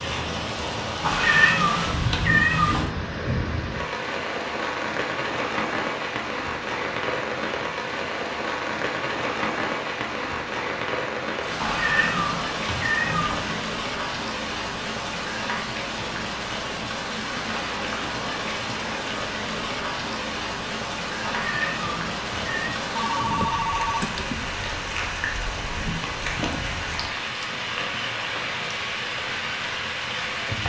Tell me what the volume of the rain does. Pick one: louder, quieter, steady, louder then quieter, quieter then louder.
steady.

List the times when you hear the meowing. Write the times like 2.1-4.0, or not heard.
1.0-2.9, 11.6-13.6, 21.2-22.8.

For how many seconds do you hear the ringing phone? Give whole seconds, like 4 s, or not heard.
2 s.